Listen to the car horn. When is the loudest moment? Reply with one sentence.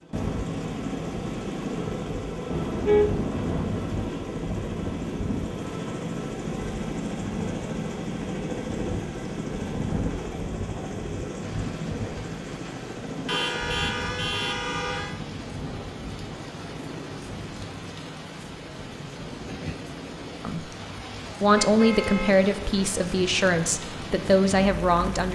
The volume of the car horn peaks at 3 seconds.